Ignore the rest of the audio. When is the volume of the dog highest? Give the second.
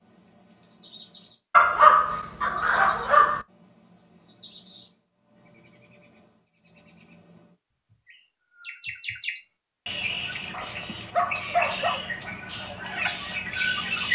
2 s.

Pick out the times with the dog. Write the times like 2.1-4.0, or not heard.
1.5-3.5, 10.5-12.0.